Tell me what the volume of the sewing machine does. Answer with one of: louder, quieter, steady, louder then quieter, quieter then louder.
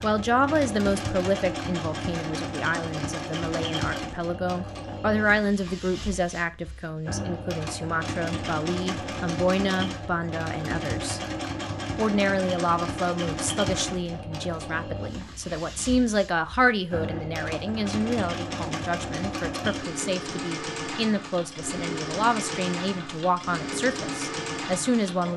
steady.